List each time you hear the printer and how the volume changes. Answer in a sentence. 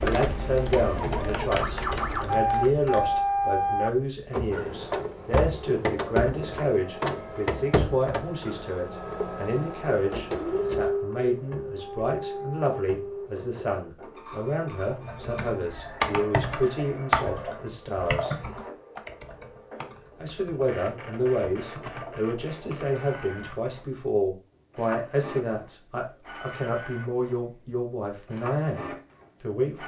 The printer can be heard from 0.0 to 29.8 s, getting quieter.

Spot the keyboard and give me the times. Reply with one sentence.
The keyboard can be heard from 0.0 to 3.2 s and from 15.1 to 23.9 s.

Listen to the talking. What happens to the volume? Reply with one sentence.
The loudness of the talking stays about the same.